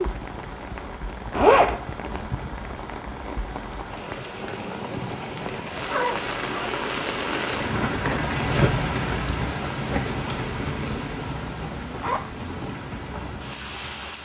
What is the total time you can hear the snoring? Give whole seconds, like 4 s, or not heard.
not heard.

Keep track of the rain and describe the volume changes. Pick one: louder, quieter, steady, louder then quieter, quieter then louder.
louder then quieter.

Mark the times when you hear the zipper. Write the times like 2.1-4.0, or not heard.
1.3-1.8, 5.8-6.8, 12.0-12.4.